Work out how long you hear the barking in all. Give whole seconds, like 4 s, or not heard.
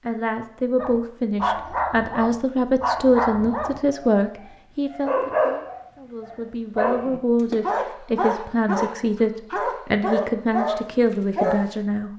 11 s.